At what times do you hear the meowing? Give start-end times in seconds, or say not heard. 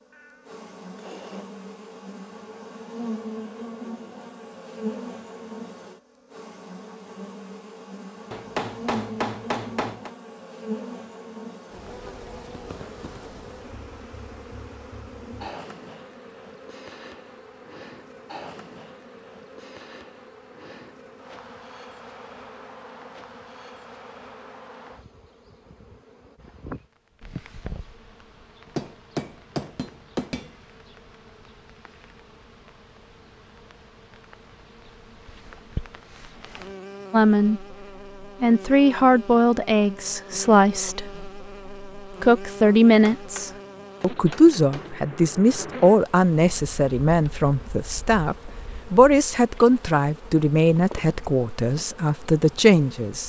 0.1-1.6.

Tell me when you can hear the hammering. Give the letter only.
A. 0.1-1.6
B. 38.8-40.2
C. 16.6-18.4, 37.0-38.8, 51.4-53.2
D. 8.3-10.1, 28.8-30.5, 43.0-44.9
D.